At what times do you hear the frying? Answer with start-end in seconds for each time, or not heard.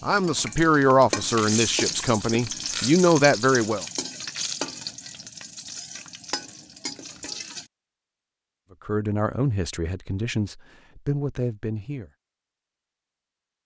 0.0-7.7.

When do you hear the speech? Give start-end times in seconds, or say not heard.
0.0-3.9, 8.7-12.1.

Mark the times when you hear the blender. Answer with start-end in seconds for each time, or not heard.
not heard.